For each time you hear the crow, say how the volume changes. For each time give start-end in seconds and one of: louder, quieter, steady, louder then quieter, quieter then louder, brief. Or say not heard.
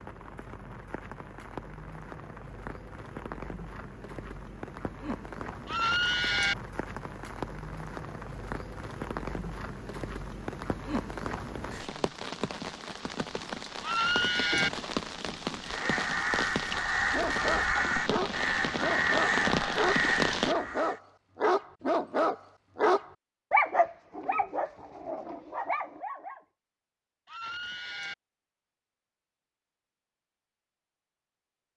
15.6-21.0 steady.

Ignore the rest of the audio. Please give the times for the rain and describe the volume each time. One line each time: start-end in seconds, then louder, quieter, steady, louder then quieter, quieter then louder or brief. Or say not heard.
0.0-20.6 louder.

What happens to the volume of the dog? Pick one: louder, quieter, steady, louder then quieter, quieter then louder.
louder then quieter.